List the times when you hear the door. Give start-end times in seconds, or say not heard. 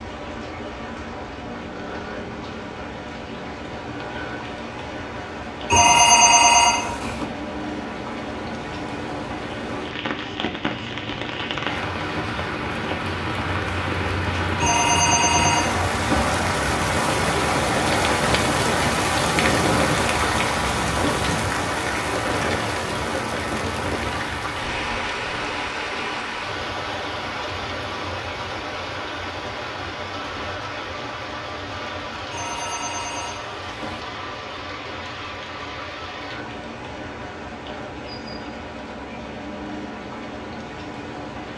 not heard.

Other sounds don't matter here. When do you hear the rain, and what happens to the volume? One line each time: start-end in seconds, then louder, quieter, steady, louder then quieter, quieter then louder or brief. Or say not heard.
0.0-41.5 louder then quieter.